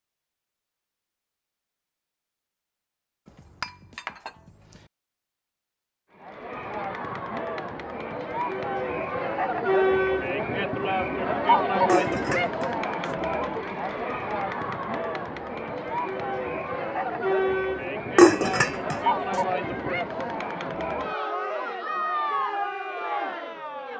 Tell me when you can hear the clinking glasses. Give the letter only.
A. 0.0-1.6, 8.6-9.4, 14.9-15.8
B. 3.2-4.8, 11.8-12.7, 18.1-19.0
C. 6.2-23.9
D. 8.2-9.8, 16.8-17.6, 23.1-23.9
B.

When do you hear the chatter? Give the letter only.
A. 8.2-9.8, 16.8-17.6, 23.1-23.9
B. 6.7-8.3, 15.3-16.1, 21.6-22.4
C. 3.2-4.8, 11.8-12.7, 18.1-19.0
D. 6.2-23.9
D.